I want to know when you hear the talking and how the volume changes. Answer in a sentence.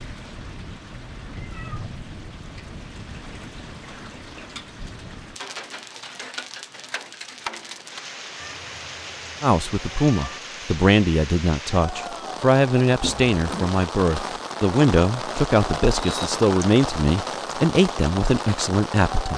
The talking can be heard from 9.4 to 19.3 s, at a steady volume.